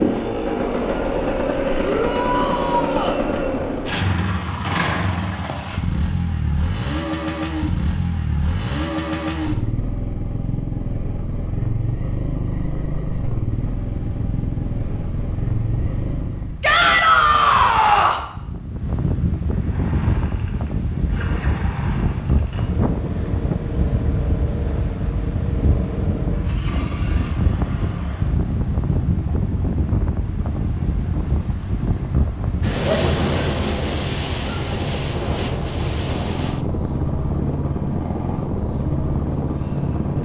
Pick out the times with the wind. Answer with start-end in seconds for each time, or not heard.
13.5-40.2.